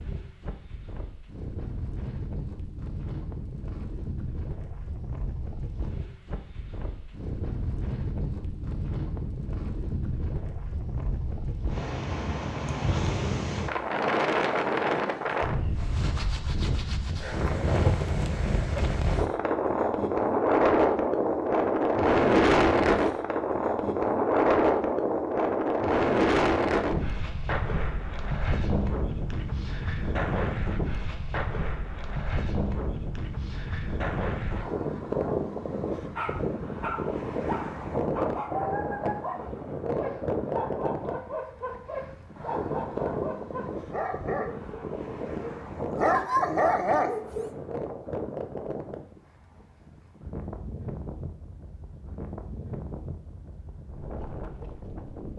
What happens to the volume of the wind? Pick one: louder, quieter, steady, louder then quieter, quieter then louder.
louder then quieter.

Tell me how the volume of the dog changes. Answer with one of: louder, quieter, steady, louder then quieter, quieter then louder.
louder.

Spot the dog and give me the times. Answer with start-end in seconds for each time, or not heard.
36.1-47.5.